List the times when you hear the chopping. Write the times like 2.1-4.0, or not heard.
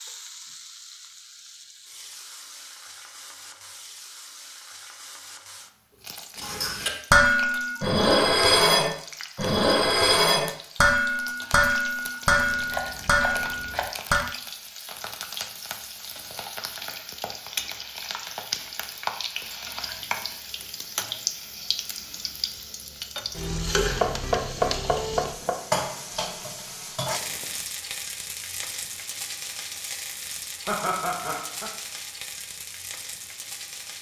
12.3-13.9, 24.0-25.6.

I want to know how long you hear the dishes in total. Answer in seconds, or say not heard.
8 s.